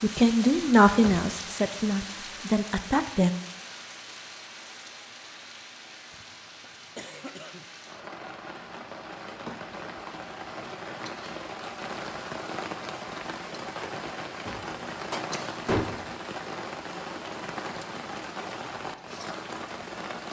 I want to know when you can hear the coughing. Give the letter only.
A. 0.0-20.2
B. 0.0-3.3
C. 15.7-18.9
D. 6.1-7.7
D.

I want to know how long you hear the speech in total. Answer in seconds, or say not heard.
3 s.